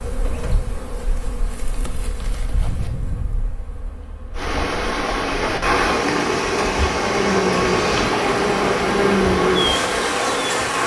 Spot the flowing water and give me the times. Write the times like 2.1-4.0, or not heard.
4.3-10.8.